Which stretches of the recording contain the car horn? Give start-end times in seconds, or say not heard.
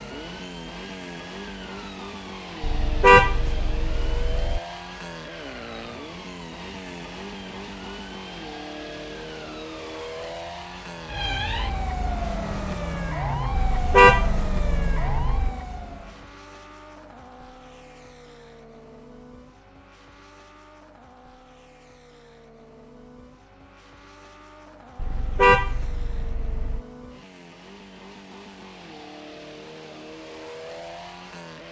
2.6-4.6, 13.5-15.5, 24.9-26.8.